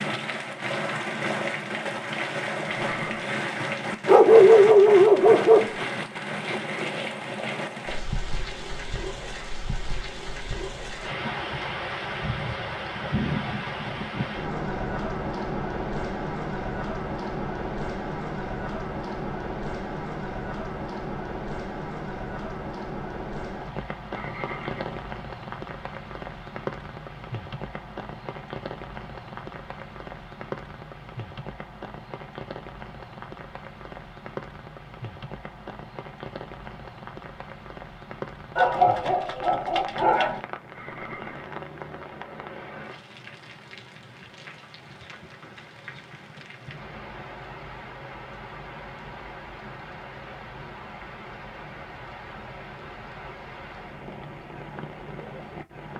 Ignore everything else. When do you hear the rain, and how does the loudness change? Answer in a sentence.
The rain can be heard from 0.0 to 55.9 s, getting quieter.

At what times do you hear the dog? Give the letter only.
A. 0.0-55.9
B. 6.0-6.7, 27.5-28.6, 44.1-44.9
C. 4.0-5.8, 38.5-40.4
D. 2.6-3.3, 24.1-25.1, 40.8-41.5
C.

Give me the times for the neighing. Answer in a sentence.
You can hear the neighing from 2.6 to 3.3 s, from 24.1 to 25.1 s and from 40.8 to 41.5 s.